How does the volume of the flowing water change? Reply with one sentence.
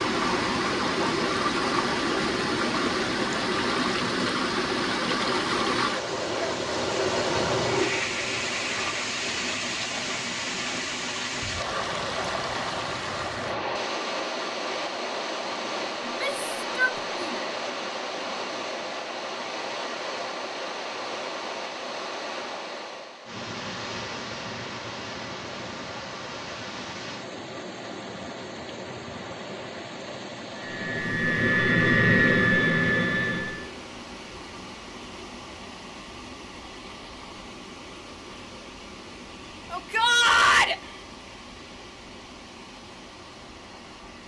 The volume of the flowing water goes down.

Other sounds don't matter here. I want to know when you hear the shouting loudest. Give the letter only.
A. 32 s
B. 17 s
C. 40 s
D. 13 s
C.